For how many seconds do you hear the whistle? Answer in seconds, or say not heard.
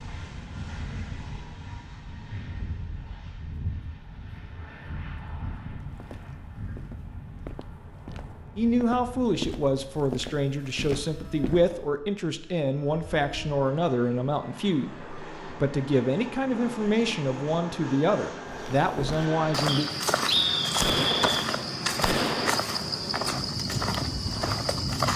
2 s.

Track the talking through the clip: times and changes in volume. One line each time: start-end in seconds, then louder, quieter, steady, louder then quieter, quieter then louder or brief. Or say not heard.
8.6-19.9 steady.